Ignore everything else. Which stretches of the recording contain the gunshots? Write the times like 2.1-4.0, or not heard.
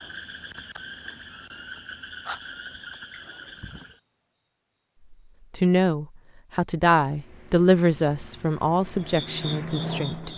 not heard.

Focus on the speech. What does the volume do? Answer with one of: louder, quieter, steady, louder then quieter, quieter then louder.
louder then quieter.